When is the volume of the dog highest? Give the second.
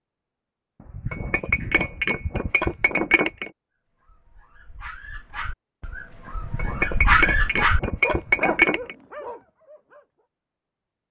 7 s.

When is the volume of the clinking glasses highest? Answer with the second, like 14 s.
8 s.